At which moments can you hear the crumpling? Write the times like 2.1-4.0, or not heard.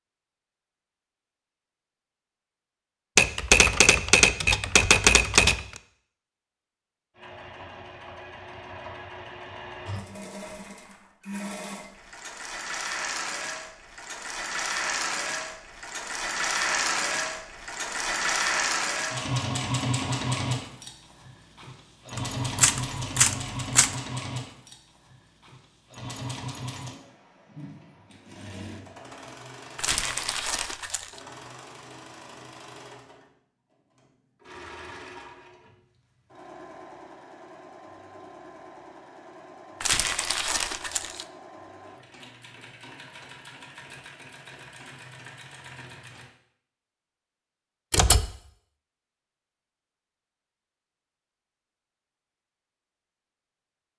10.3-11.2, 29.8-31.2, 39.8-41.2.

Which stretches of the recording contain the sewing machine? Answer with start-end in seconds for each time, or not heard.
7.2-46.3.